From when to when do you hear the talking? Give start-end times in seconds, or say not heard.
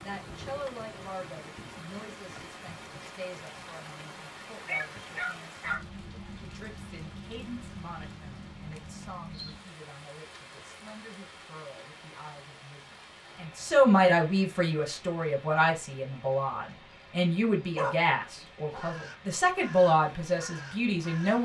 0.0-21.4.